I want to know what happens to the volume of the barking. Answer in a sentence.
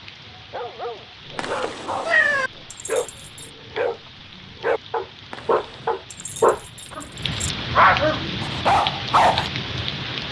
The loudness of the barking goes up.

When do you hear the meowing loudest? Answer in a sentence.
The loudest moment of the meowing is at 2 seconds.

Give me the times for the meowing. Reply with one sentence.
The meowing can be heard from 1.4 to 2.5 s and from 5.3 to 6.0 s.